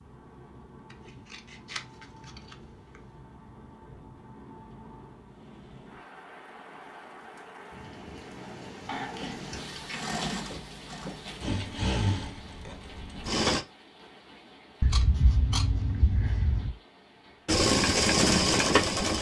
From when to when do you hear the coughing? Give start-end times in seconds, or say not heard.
not heard.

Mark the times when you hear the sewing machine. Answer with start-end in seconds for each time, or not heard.
9.2-13.7, 17.4-19.1.